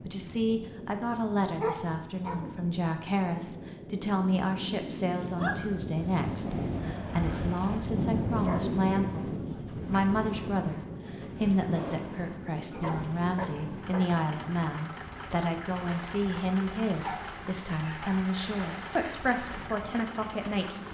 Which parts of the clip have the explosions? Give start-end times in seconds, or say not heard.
11.7-12.2.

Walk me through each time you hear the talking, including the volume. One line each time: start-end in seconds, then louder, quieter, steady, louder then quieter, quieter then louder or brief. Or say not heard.
0.1-20.8 steady.